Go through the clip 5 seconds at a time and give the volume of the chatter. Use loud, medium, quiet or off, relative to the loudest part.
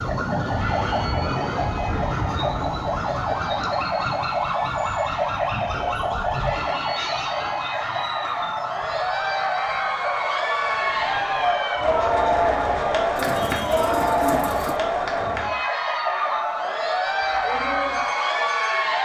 quiet, medium, loud, loud.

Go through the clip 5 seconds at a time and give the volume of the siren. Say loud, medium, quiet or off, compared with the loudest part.
loud, loud, medium, medium.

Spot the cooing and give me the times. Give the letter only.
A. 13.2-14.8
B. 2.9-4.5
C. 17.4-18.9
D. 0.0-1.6
A.